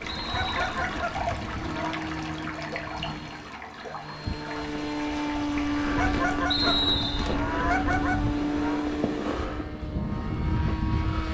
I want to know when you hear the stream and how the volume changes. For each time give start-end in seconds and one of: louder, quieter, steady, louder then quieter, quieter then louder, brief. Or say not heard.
0.0-9.5 quieter.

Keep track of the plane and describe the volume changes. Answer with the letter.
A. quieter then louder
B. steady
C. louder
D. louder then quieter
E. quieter
C.